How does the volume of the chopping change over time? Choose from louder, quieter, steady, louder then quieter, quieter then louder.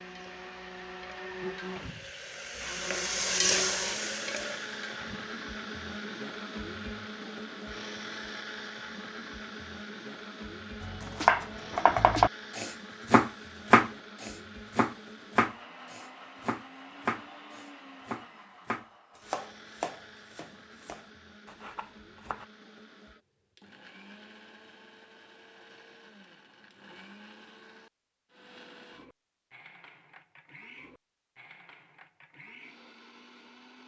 quieter.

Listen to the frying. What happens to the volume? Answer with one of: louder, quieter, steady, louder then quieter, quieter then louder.
louder then quieter.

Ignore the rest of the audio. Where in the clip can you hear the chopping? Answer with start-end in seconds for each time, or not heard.
10.8-22.4.